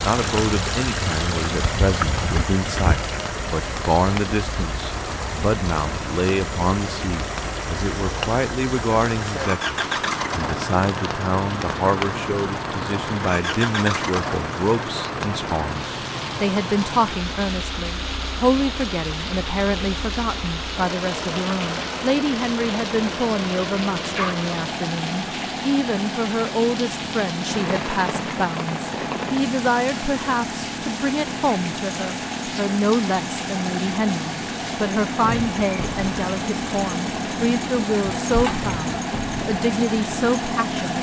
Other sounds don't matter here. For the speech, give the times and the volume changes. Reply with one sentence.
You can hear the speech from 0.1 to 40.9 s, at a steady volume.